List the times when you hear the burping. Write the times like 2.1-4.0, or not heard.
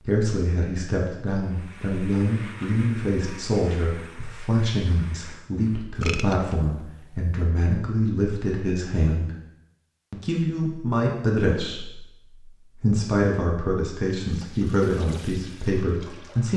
6.0-7.3.